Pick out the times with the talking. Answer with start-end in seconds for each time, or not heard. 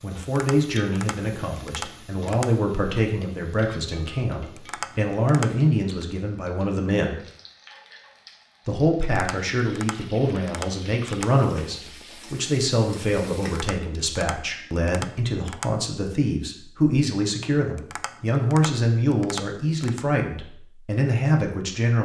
0.0-7.2, 8.7-22.0.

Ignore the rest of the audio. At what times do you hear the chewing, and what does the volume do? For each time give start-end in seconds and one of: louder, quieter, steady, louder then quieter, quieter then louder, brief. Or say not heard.
not heard.